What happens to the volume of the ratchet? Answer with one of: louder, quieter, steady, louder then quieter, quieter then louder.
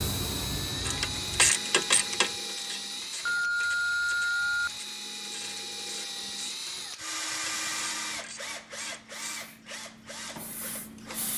quieter.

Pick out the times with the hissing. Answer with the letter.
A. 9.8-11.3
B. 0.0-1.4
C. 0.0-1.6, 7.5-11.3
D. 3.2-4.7
C.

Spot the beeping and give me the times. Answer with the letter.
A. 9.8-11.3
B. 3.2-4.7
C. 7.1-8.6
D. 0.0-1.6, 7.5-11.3
B.